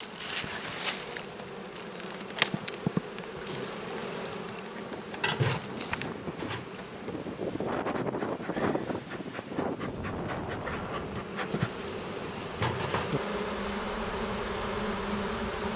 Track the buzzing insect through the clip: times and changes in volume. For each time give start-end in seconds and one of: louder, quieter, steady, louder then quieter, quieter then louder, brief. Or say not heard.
0.0-15.7 quieter then louder.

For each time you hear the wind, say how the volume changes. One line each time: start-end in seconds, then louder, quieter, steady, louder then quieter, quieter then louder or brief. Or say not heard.
4.7-15.7 louder then quieter.